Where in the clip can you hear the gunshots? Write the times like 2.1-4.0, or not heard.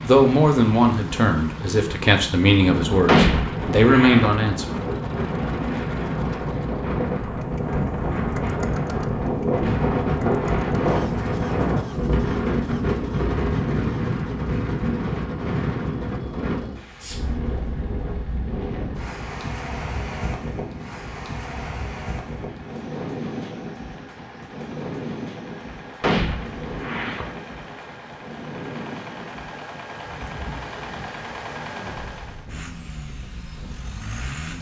3.0-4.3, 26.0-27.3.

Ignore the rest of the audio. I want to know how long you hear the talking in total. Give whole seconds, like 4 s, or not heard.
5 s.